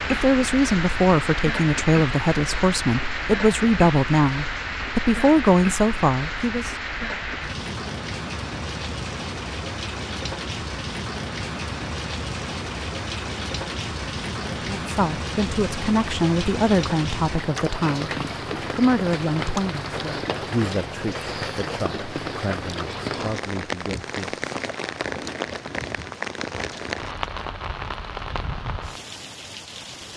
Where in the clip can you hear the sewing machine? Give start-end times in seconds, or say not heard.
not heard.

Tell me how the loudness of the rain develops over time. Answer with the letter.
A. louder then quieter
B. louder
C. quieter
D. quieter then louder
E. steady
E.